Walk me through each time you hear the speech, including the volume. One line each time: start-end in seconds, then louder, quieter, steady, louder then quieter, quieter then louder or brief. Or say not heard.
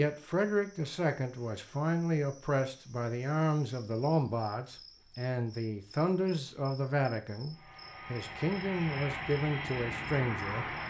0.0-10.8 steady.